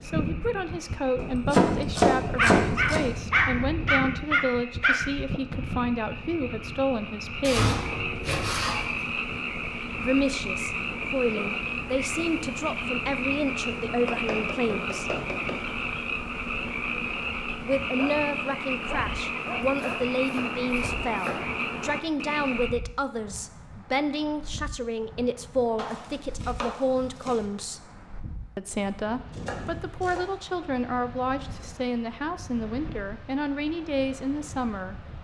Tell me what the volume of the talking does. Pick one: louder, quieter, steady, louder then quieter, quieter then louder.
steady.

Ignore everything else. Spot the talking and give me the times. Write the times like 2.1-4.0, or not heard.
0.0-7.8, 10.0-15.2, 17.6-27.8, 28.6-35.0.